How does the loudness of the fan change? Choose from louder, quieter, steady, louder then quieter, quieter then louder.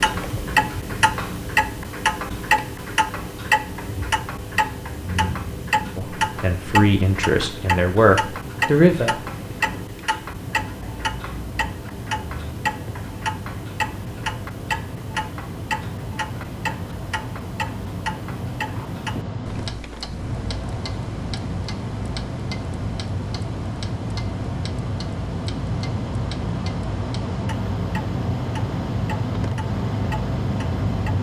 louder.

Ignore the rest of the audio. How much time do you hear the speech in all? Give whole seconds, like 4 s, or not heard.
3 s.